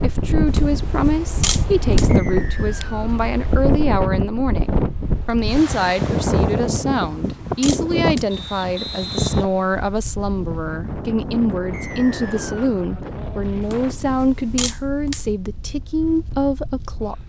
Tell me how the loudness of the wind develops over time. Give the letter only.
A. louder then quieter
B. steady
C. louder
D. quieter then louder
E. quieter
E.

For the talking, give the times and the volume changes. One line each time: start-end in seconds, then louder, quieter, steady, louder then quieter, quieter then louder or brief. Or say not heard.
0.0-17.2 steady.